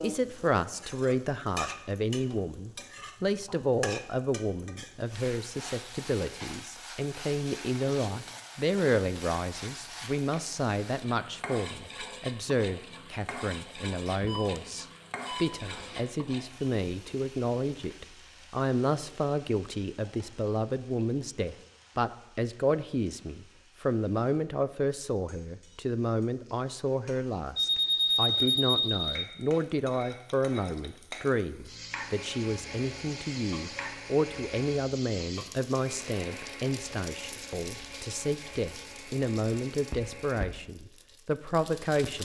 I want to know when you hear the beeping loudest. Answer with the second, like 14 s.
28 s.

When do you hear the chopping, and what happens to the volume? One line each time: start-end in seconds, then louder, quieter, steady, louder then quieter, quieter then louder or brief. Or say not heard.
not heard.